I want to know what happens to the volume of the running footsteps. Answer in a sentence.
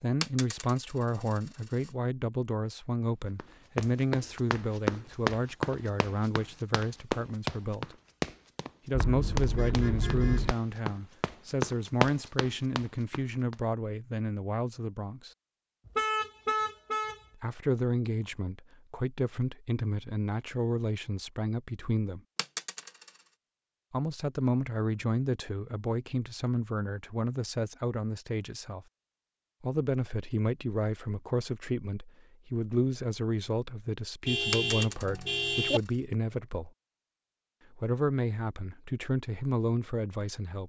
The loudness of the running footsteps goes down, then up.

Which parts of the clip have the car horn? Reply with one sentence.
You can hear the car horn from 8.9 to 10.6 s, from 15.8 to 17.2 s and from 34.2 to 35.8 s.